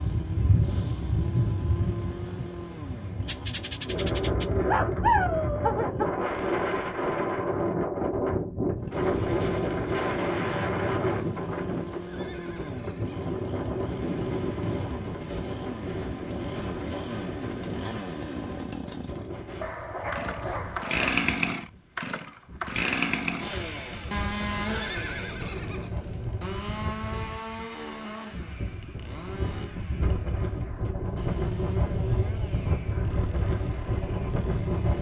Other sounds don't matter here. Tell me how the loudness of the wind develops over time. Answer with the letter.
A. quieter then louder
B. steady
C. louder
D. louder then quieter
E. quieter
A.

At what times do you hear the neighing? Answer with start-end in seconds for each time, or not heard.
6.5-7.2, 11.9-13.2, 24.4-25.9.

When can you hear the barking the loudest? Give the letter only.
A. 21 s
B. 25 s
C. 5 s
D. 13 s
C.